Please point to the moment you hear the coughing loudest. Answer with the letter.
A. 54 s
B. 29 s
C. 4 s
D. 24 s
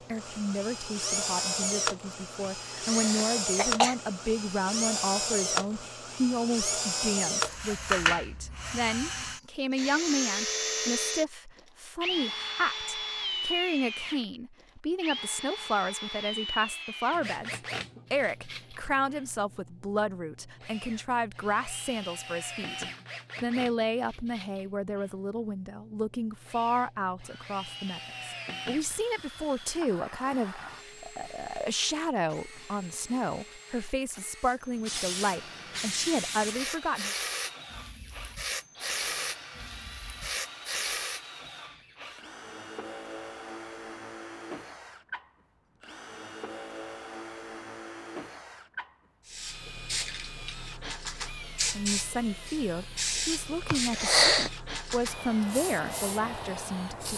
A.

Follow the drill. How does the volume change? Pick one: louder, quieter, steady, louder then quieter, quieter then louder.
quieter.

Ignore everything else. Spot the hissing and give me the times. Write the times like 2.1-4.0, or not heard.
34.4-41.2, 49.2-57.1.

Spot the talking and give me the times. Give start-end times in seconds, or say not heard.
0.1-37.1, 51.8-57.1.